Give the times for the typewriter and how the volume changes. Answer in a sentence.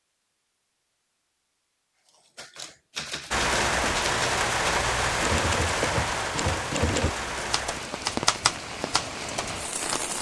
You can hear the typewriter from 2.0 to 10.0 s, getting louder.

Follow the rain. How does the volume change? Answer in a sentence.
The loudness of the rain goes down.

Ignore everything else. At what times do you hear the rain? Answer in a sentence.
The rain can be heard from 3.3 to 10.1 s.